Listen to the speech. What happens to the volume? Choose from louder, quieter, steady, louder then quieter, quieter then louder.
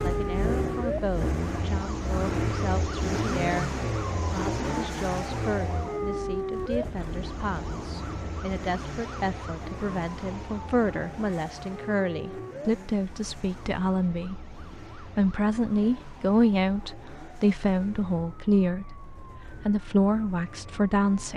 louder.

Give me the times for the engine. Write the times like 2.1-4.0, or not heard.
0.0-21.3.